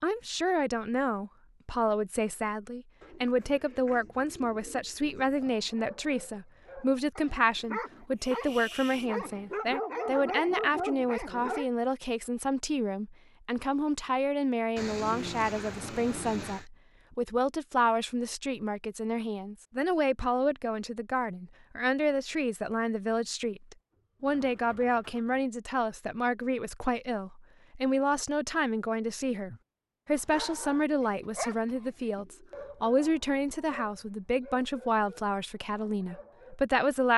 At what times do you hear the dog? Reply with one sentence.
The dog can be heard from 5.5 to 11.7 s and from 30.1 to 36.6 s.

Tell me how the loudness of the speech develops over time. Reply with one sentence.
The volume of the speech stays about the same.